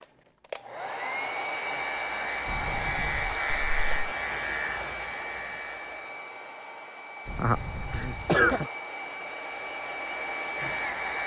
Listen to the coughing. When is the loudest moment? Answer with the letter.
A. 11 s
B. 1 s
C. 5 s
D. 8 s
D.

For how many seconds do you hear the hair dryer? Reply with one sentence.
You can hear the hair dryer for 11 seconds altogether.